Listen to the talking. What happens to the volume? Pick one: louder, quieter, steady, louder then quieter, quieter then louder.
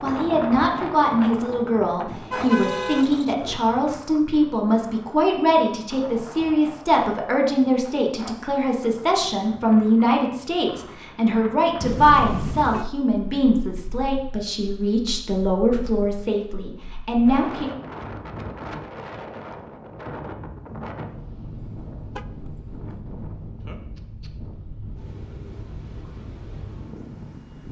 steady.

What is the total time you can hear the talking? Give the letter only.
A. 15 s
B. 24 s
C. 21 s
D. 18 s
D.